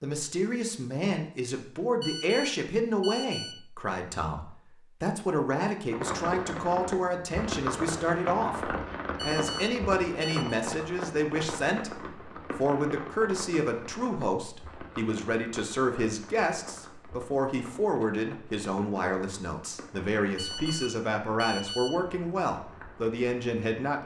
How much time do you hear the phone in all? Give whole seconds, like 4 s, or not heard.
5 s.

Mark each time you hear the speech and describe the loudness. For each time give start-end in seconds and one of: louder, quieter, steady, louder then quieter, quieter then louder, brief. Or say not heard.
0.0-24.0 steady.